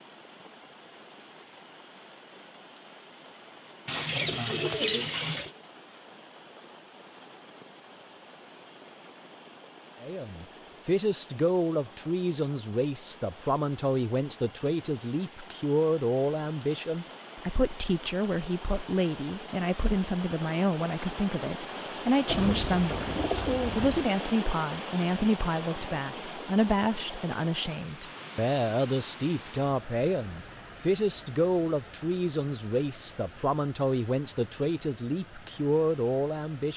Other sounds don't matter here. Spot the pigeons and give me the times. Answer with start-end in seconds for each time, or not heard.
3.9-5.5, 22.2-24.1.